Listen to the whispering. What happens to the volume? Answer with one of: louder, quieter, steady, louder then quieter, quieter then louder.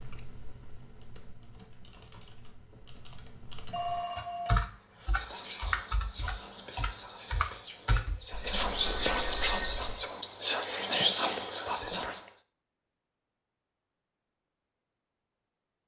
louder.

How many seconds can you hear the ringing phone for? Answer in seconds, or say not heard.
2 s.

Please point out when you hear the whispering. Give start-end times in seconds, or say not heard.
5.0-12.4.